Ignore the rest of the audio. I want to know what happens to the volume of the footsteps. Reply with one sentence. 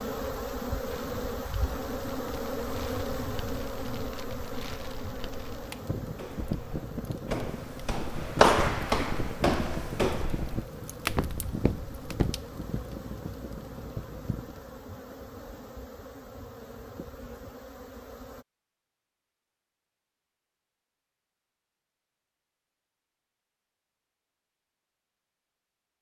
The volume of the footsteps goes up, then down.